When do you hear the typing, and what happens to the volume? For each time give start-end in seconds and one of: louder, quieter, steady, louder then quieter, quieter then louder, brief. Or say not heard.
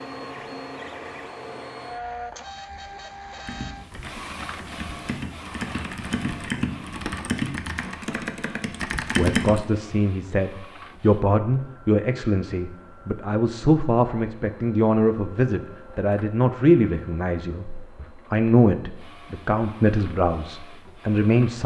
3.5-9.7 louder.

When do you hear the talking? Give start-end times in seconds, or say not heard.
9.2-21.6.